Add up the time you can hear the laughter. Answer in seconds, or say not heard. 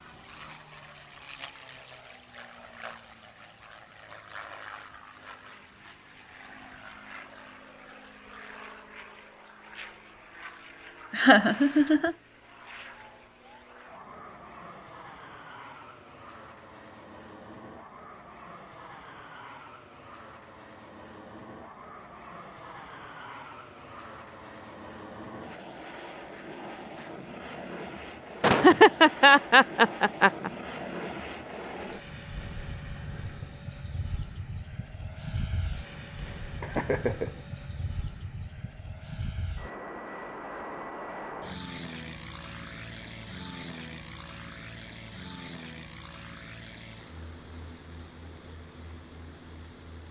4 s.